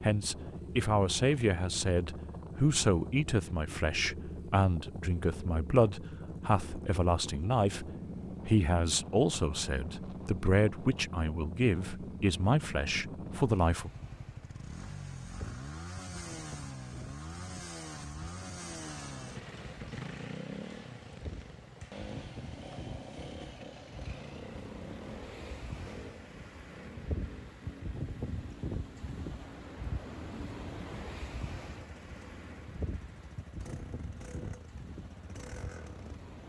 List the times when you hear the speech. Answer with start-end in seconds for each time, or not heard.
0.0-13.9.